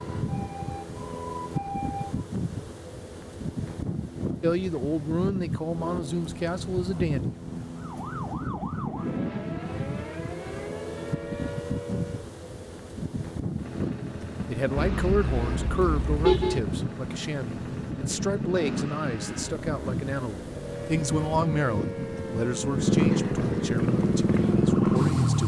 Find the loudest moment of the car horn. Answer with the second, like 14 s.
16 s.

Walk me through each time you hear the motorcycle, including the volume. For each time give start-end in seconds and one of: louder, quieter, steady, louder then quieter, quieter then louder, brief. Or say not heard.
13.6-25.4 louder.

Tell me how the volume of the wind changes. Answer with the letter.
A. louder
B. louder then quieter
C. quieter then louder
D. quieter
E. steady
E.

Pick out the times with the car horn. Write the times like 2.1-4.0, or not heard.
14.8-16.6.